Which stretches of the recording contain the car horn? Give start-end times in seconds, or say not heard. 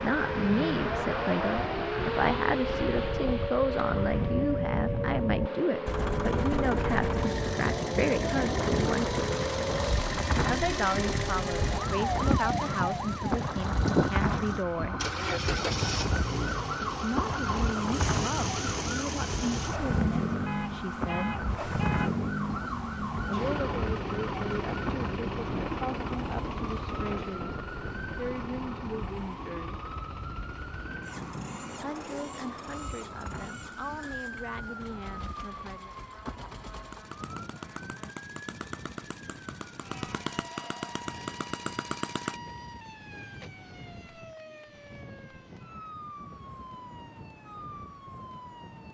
20.4-22.2.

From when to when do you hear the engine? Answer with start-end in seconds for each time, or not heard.
5.8-42.4.